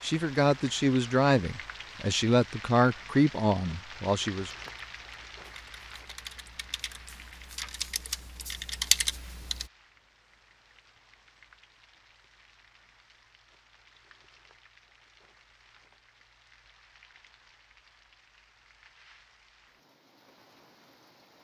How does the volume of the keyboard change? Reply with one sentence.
The volume of the keyboard goes up.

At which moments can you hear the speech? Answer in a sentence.
You can hear the speech from 0.0 to 4.5 s.